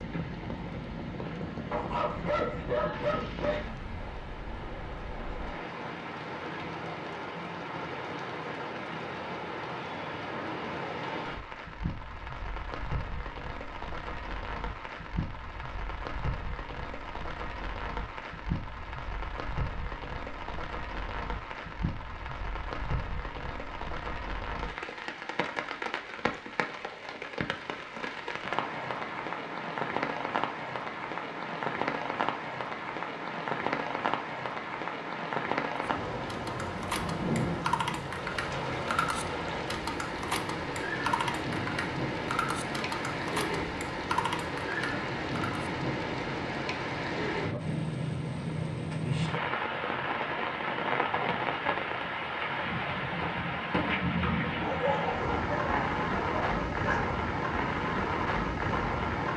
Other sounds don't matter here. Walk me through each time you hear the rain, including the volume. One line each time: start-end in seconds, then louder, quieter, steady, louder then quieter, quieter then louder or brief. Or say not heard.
0.0-59.3 louder.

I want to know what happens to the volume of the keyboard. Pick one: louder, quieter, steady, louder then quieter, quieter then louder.
steady.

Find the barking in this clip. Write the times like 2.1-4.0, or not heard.
1.7-3.7, 54.6-57.1.